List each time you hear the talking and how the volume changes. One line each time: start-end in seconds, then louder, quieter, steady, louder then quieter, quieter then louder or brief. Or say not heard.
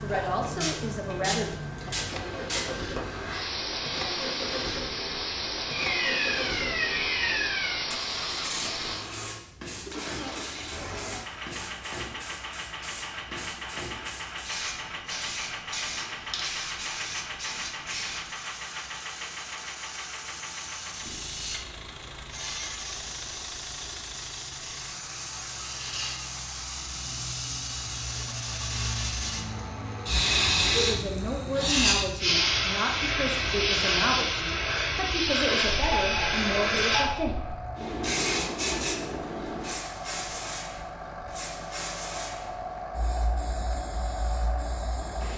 0.0-1.6 brief
30.7-37.4 steady.